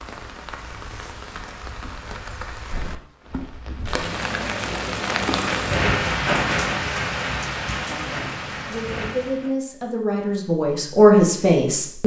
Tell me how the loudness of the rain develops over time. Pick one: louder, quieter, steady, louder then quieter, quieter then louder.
louder then quieter.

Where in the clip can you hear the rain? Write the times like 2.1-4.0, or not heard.
0.0-9.6.